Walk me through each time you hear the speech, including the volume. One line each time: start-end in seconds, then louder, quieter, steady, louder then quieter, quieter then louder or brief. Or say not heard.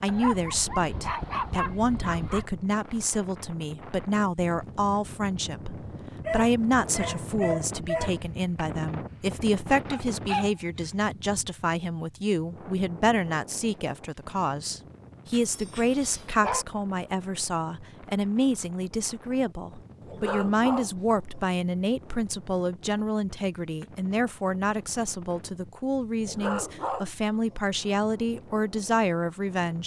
0.0-29.8 steady.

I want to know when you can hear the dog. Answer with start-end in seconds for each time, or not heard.
0.1-2.5, 6.2-8.2, 9.9-11.4, 15.3-16.6, 20.0-21.4, 26.2-27.6.